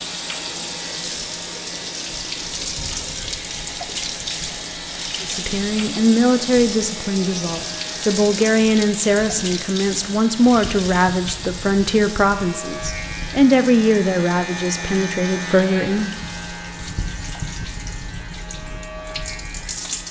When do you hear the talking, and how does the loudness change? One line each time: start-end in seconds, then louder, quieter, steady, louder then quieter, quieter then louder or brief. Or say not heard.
5.2-16.1 steady.